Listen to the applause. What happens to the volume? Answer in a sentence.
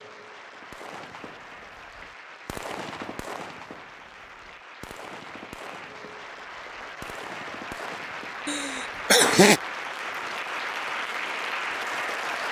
The loudness of the applause goes up.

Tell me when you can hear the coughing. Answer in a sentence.
You can hear the coughing from 8.4 to 9.6 s.